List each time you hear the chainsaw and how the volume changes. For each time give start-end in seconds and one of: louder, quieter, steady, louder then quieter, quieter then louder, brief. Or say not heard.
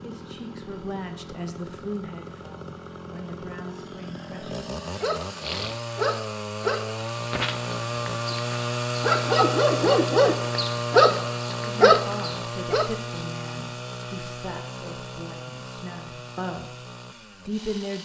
0.0-18.0 louder then quieter.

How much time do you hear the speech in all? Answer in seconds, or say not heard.
10 s.